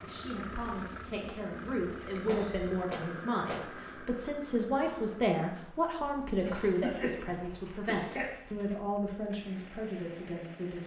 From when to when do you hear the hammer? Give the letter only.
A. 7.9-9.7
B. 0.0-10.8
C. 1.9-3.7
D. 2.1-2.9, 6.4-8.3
C.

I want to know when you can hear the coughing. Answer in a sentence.
You can hear the coughing from 2.1 to 2.9 s and from 6.4 to 8.3 s.